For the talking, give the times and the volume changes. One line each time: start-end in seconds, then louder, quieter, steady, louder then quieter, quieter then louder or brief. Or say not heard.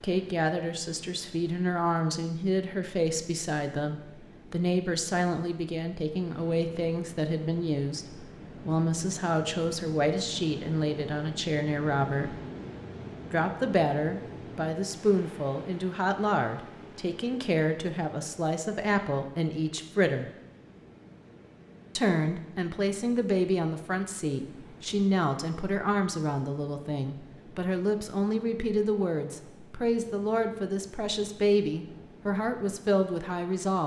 0.0-12.4 steady
13.3-20.3 steady
21.9-33.8 steady.